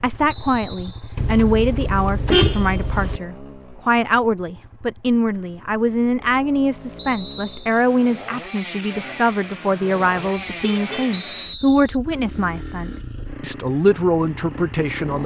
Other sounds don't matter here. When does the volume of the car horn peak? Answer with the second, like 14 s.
2 s.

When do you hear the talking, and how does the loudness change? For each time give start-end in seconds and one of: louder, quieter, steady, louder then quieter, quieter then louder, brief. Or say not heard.
0.0-15.2 steady.